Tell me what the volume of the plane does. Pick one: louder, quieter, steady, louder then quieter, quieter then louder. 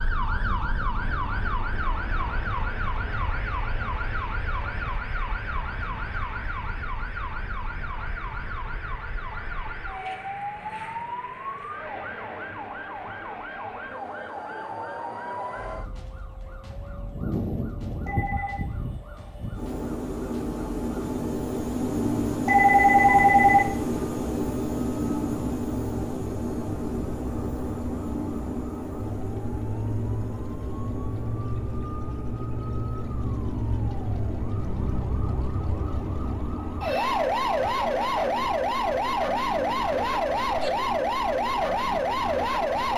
louder then quieter.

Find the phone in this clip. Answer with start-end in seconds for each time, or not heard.
18.1-18.7, 22.4-23.8.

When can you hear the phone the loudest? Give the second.
23 s.